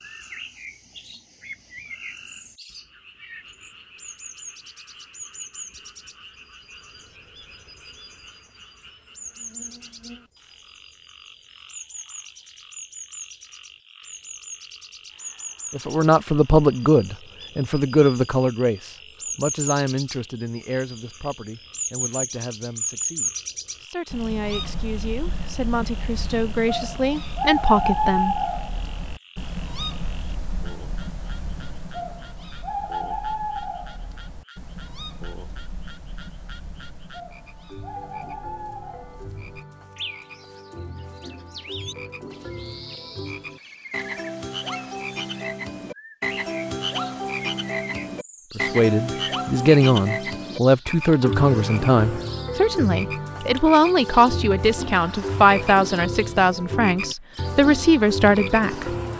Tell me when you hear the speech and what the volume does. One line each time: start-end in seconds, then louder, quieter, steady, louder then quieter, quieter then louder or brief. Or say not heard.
15.7-28.4 quieter then louder
48.5-59.0 steady.